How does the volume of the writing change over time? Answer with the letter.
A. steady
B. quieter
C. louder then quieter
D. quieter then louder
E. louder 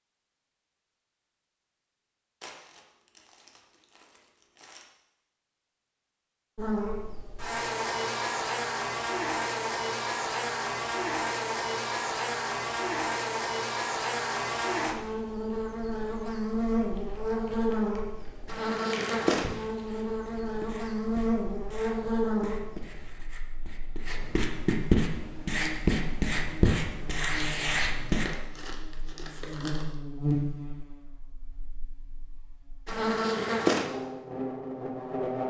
E.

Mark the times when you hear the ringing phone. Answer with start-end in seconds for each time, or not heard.
not heard.